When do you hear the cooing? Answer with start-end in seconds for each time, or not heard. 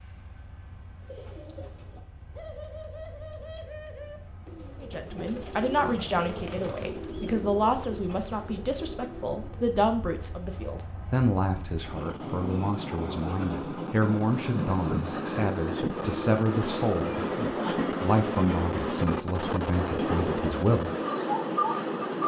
1.0-9.8.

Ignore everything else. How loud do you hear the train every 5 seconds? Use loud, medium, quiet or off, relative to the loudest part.
quiet, quiet, medium, loud, loud.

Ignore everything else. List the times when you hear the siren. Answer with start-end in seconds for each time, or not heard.
not heard.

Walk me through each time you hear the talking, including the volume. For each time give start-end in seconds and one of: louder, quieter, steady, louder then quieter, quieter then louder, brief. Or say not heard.
4.8-20.9 steady.